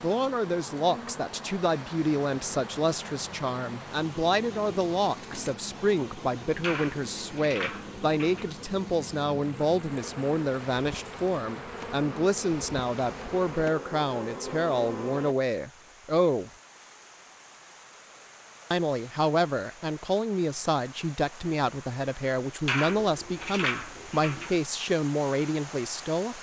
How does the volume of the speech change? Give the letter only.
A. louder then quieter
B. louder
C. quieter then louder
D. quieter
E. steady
E.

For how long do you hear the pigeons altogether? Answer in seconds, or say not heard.
4 s.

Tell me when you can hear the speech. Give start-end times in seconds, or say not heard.
0.0-16.5, 18.7-26.3.